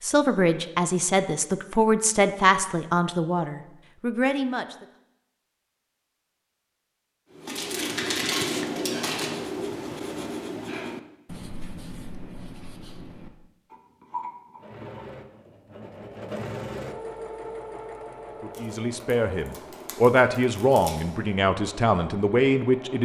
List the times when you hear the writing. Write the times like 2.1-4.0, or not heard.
7.3-15.1.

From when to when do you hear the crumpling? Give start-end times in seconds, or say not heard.
7.5-9.3, 18.5-21.1.